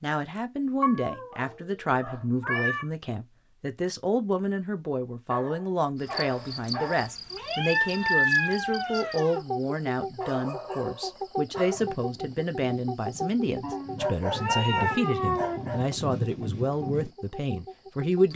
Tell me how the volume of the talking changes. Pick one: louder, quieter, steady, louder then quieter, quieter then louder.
steady.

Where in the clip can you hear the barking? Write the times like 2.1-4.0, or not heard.
1.3-2.8, 5.3-7.1, 10.2-11.8, 13.9-15.8.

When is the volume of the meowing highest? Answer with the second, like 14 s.
8 s.